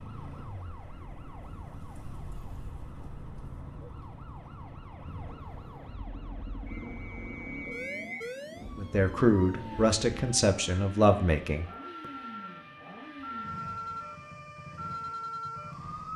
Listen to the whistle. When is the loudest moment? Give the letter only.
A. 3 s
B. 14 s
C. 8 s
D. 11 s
C.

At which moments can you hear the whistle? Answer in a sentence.
You can hear the whistle from 6.7 to 8.3 s.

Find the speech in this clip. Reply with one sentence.
You can hear the speech from 8.8 to 11.7 s.